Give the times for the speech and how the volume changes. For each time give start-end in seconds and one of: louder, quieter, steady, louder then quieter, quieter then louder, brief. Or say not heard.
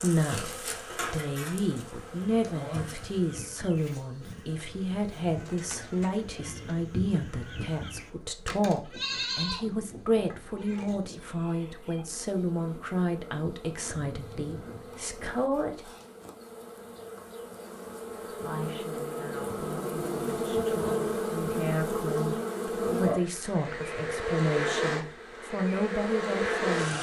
0.0-15.9 steady
18.4-26.9 louder.